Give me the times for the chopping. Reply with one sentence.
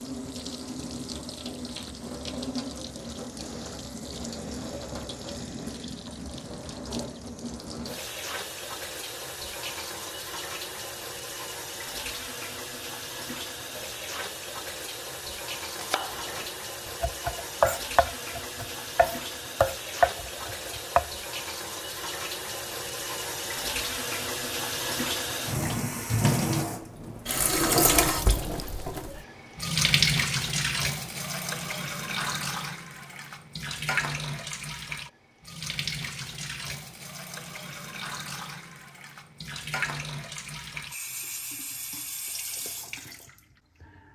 The chopping can be heard from 15.8 to 21.1 s.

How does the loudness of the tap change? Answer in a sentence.
The volume of the tap goes up, then down.